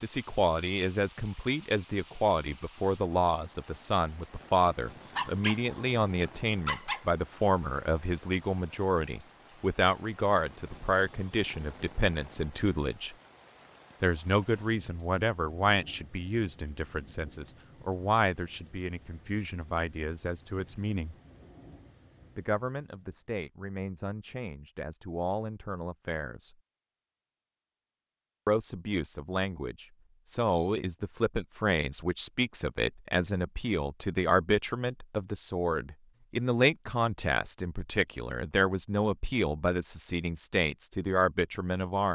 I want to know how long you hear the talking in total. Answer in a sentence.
The talking can be heard for 38 seconds in total.